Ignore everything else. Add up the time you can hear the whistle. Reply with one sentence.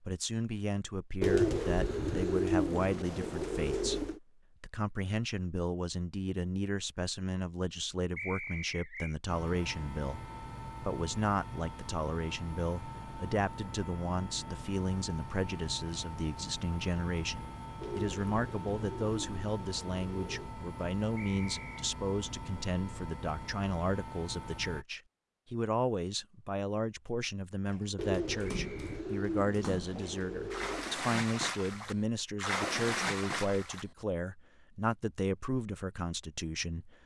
The whistle can be heard for 2 seconds in total.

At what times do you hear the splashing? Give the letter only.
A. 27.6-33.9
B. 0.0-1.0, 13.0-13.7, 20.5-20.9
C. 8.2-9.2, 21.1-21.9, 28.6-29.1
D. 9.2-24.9
A.